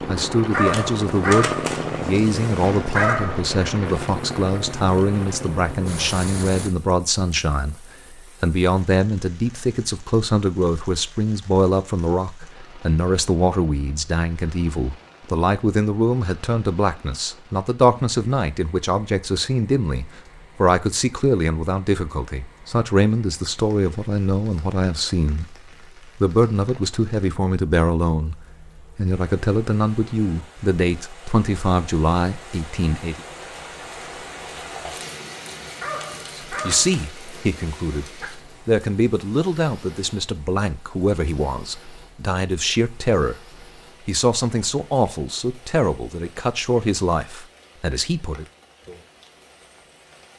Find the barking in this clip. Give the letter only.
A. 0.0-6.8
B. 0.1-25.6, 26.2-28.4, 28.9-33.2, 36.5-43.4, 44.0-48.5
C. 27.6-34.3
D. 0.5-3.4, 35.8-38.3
D.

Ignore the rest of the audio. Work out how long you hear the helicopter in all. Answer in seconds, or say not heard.
7 s.